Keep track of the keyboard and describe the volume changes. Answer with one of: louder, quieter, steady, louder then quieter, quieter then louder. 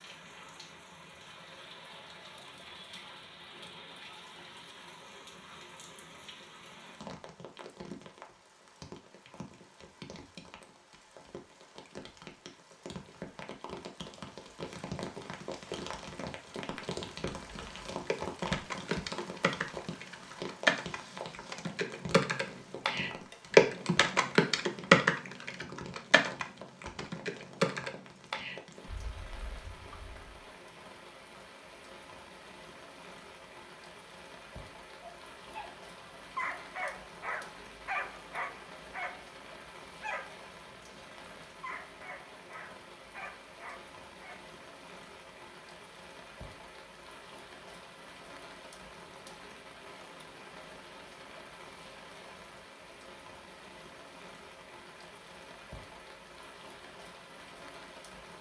louder then quieter.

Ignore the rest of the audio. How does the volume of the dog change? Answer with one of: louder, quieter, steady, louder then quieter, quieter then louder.
quieter.